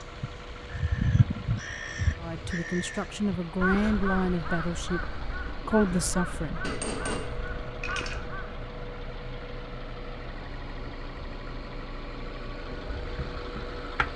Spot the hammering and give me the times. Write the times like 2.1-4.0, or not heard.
6.6-8.2.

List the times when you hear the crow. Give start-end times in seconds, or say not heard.
0.0-8.6.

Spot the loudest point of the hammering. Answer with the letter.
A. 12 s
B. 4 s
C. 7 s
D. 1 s
C.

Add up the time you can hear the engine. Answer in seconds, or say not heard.
14 s.